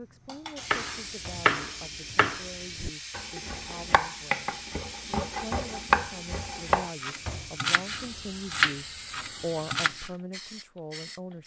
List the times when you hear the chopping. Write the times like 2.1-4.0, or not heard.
0.7-10.1.